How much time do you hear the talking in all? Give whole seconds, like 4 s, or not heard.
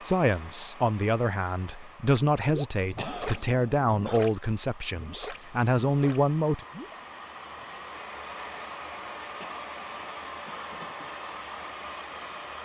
7 s.